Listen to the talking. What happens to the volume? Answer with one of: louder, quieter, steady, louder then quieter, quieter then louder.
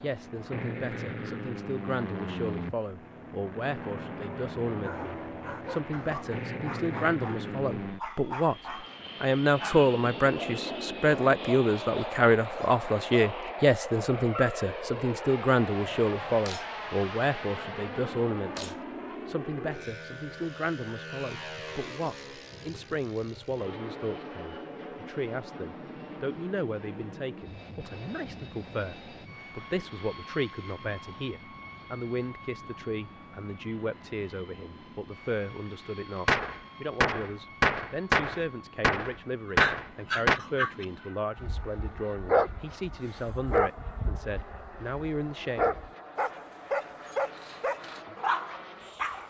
louder then quieter.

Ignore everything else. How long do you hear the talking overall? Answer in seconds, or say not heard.
46 s.